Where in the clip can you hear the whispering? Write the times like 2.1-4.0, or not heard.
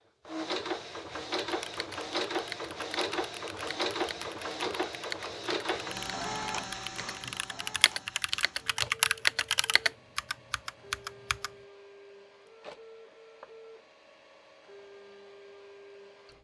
not heard.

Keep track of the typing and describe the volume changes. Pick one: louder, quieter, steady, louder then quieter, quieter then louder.
louder.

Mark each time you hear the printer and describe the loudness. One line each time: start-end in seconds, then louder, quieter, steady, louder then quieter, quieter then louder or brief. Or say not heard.
0.0-16.3 quieter.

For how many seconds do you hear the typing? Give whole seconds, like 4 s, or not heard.
10 s.